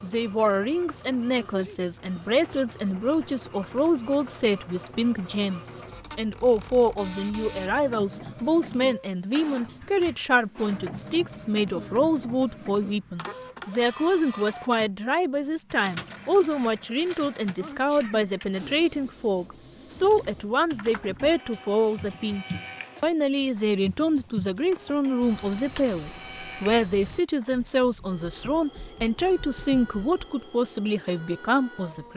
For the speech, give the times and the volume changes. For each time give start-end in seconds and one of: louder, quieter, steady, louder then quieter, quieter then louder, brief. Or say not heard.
0.0-32.1 steady.